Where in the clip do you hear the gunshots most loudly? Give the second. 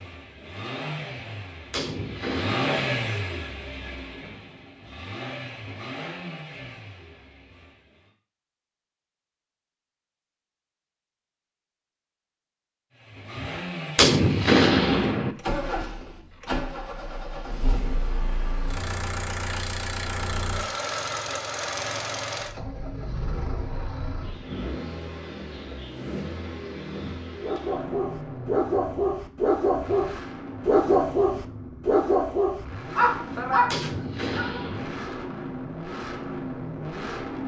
15 s.